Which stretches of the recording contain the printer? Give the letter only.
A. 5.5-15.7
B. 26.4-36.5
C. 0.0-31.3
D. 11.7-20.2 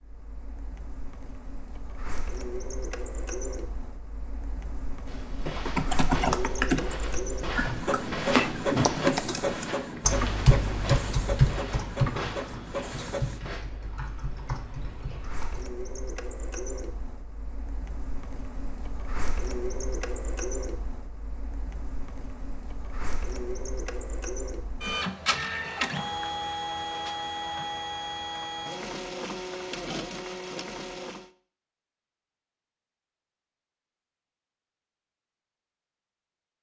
C.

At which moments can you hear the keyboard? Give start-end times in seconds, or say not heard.
5.5-15.7.